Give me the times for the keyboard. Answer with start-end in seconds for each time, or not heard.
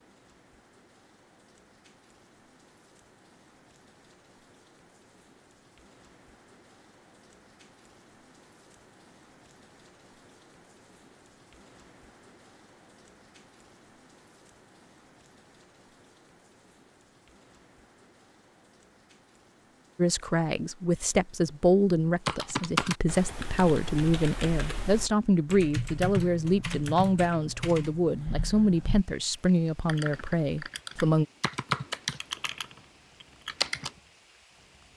22.2-34.0.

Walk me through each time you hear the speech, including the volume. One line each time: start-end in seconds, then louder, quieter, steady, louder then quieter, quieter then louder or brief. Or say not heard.
19.9-31.2 steady.